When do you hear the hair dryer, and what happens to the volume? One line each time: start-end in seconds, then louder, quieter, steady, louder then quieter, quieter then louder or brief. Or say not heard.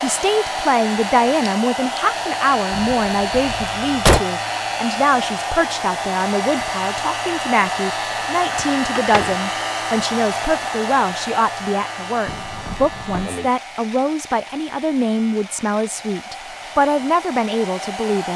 0.0-18.3 quieter.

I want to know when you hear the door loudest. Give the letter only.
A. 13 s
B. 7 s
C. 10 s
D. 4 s
D.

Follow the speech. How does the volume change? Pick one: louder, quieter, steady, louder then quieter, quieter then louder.
steady.